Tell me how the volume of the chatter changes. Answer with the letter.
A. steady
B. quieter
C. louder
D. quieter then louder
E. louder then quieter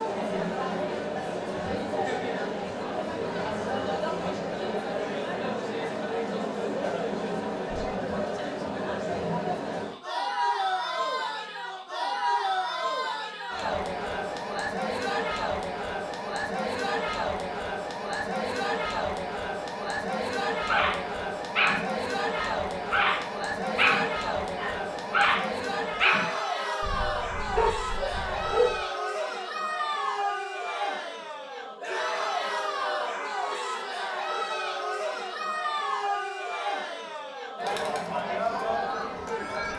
A.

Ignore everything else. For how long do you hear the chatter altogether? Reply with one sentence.
The chatter can be heard for 40 seconds in total.